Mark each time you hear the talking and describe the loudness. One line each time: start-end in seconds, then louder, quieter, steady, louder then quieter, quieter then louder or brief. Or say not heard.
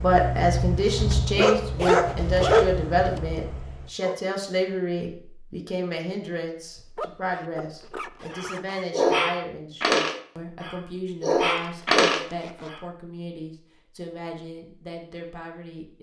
0.0-15.9 quieter.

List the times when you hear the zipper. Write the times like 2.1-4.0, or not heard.
1.8-3.1, 6.8-8.8, 11.6-12.7.